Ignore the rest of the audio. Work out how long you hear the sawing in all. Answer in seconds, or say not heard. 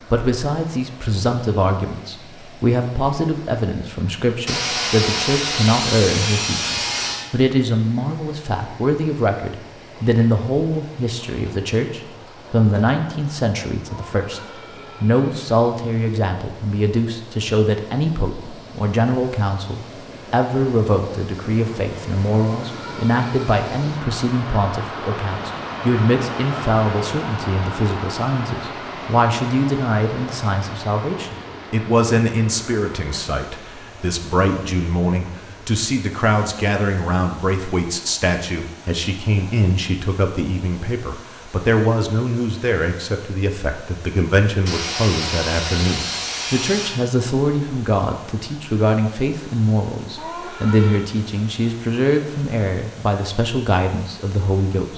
5 s.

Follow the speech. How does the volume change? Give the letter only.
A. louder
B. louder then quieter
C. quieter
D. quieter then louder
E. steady
E.